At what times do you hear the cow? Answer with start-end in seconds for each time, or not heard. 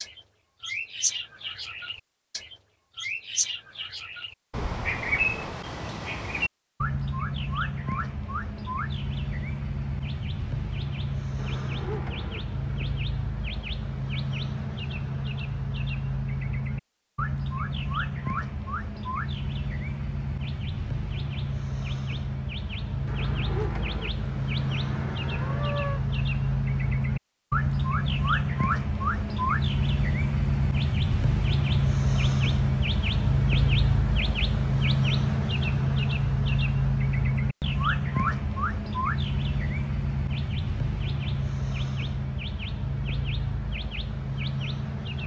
11.3-12.9, 23.1-26.1.